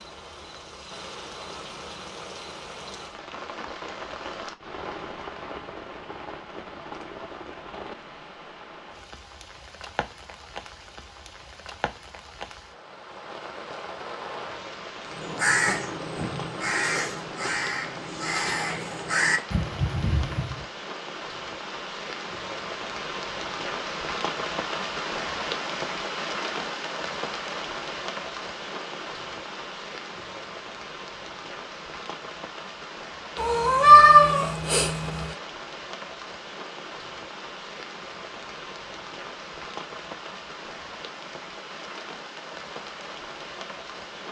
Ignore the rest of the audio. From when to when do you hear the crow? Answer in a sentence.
The crow can be heard from 15.1 to 20.6 s.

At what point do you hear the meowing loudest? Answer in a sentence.
The loudest moment of the meowing is at 34 seconds.